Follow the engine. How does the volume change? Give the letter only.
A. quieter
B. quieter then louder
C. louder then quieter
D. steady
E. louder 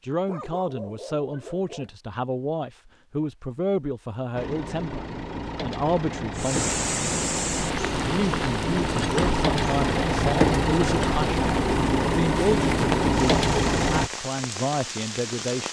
E.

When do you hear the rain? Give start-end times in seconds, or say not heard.
6.3-15.6.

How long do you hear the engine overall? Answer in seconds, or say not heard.
10 s.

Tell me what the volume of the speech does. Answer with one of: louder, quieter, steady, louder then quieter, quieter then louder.
steady.